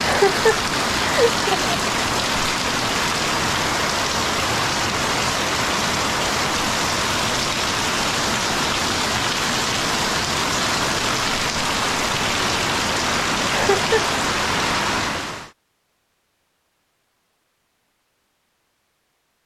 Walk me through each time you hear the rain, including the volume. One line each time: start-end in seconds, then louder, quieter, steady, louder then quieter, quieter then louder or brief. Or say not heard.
0.0-15.5 steady.